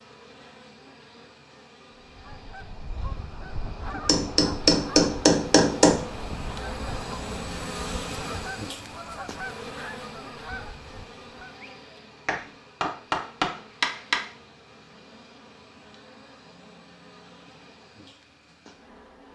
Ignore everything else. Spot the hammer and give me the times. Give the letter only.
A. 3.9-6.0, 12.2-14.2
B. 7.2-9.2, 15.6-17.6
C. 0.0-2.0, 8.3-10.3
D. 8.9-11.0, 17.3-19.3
A.